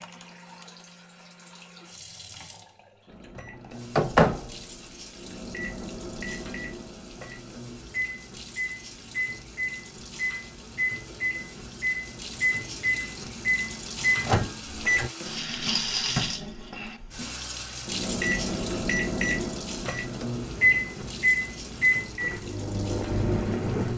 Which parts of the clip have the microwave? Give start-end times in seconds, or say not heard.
3.4-15.1, 17.9-23.9.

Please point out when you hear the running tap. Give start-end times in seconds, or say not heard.
0.0-23.9.